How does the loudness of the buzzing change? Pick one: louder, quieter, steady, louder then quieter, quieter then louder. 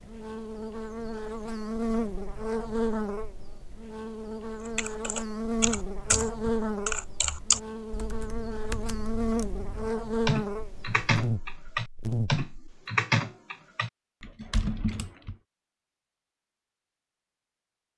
steady.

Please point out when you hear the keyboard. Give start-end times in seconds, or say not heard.
4.7-15.3.